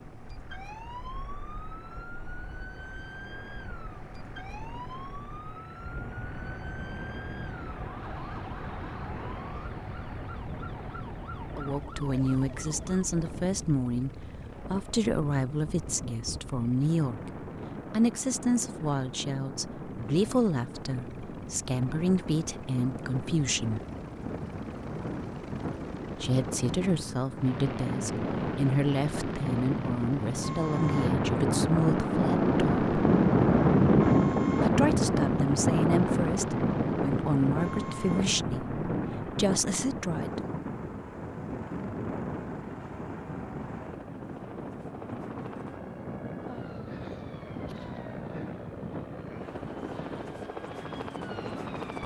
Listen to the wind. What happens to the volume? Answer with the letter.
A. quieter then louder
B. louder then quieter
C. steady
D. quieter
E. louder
B.